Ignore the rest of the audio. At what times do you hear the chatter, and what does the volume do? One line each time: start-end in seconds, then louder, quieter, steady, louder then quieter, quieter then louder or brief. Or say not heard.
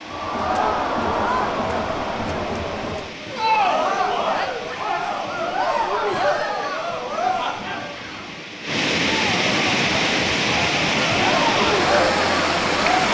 0.1-13.0 quieter then louder.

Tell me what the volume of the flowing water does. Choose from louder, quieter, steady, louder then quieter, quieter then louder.
louder.